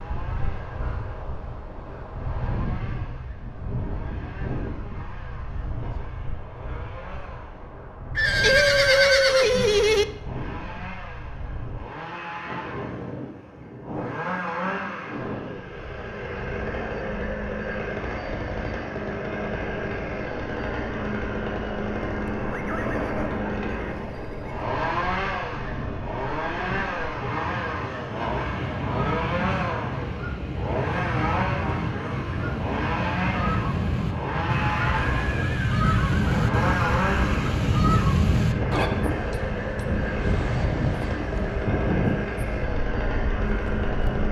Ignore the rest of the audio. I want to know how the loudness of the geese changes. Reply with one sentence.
The volume of the geese goes up.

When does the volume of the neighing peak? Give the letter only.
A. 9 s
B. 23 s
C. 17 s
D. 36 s
A.